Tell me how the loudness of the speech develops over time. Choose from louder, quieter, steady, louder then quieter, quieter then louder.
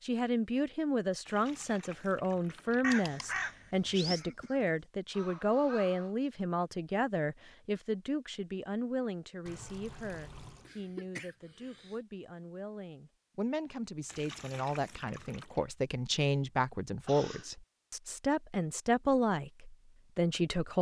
quieter then louder.